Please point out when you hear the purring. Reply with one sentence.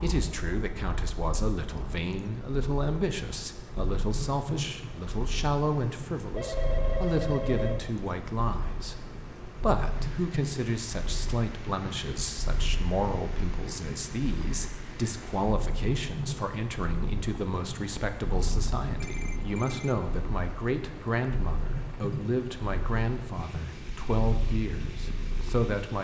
You can hear the purring from 0.0 to 25.8 s.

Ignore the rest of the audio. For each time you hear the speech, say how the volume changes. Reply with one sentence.
The speech can be heard from 0.0 to 25.9 s, at a steady volume.